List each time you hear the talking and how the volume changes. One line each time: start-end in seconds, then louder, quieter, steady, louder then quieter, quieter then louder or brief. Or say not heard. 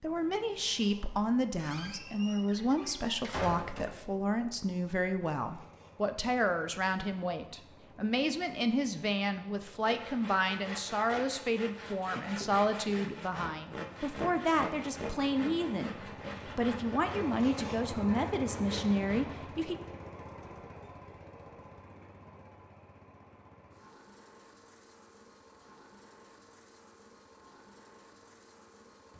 0.0-19.8 steady.